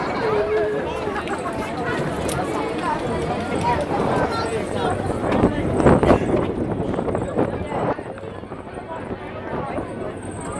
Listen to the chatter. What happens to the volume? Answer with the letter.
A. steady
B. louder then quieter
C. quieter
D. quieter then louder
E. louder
C.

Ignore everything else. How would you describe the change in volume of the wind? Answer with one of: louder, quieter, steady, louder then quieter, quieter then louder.
louder then quieter.